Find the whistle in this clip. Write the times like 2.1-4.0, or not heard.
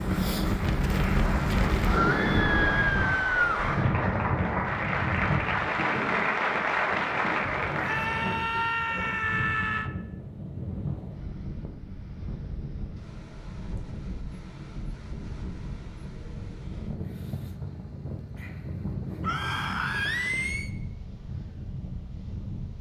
not heard.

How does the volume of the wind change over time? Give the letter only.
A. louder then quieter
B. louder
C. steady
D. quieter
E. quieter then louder
D.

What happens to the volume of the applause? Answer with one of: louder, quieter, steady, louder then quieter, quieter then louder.
louder.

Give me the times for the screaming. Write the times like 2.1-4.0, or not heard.
1.9-3.8, 7.8-9.9, 19.2-20.7.